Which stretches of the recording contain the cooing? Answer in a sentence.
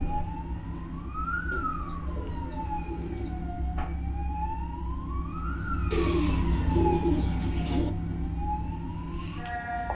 You can hear the cooing from 1.5 to 3.5 s and from 5.9 to 7.9 s.